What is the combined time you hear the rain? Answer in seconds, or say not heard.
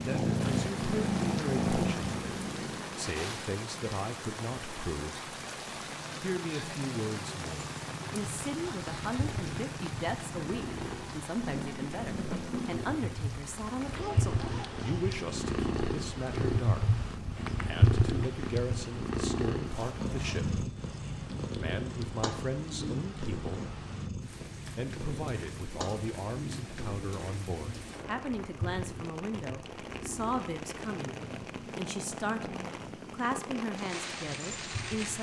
35 s.